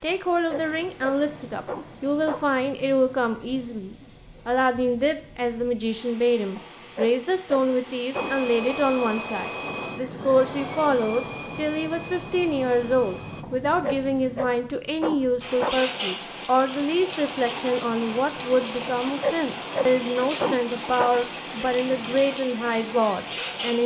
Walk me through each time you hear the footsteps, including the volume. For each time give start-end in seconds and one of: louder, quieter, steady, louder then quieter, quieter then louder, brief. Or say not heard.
not heard.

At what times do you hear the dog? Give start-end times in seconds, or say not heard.
0.1-2.5, 6.5-8.4, 13.4-15.8, 18.8-21.1.